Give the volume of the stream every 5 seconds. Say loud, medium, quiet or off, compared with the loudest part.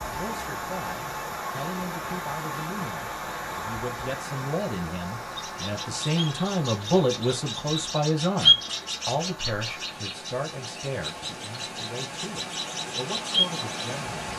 loud, medium, loud.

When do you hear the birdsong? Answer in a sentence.
The birdsong can be heard from 5.3 to 14.3 s.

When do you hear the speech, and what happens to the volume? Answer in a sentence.
You can hear the speech from 0.0 to 14.3 s, getting louder then quieter.